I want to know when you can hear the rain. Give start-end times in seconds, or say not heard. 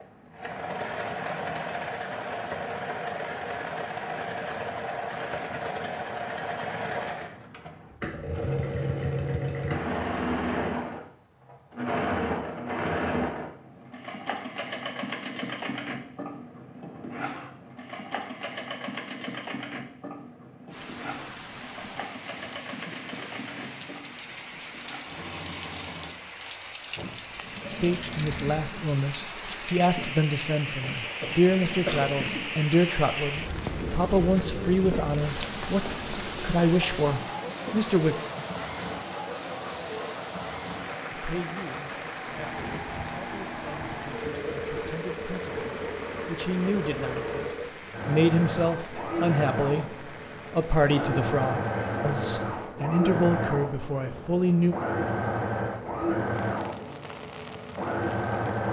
20.6-58.6.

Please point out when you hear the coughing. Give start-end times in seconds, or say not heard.
31.2-32.5.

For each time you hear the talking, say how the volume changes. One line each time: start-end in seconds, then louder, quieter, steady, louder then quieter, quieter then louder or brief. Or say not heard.
27.7-38.1 steady
41.1-54.8 louder.